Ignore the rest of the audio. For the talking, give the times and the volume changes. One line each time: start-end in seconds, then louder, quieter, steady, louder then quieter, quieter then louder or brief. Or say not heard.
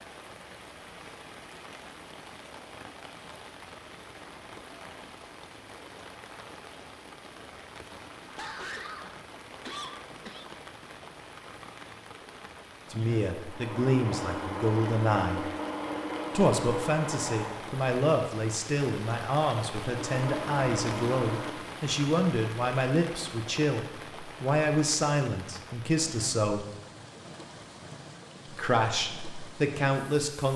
12.9-15.4 brief
16.3-26.6 steady
28.5-30.5 brief.